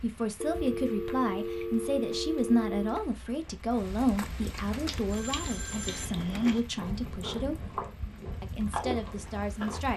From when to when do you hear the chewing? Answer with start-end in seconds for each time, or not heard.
4.8-9.8.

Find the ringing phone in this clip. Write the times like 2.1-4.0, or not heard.
0.4-3.0, 5.1-6.4.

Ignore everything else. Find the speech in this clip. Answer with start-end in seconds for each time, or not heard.
0.0-7.8, 8.4-9.9.